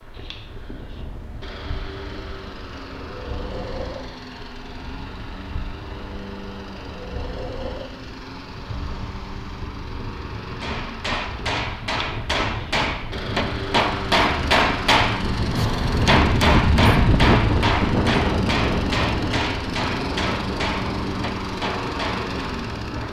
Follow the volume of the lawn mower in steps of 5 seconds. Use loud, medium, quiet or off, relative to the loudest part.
medium, medium, loud, loud, loud.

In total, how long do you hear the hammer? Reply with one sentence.
The hammer can be heard for 12 seconds in total.